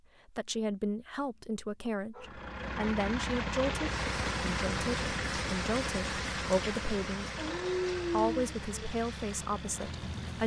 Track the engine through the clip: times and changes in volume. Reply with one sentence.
You can hear the engine from 2.1 to 10.4 s, getting quieter.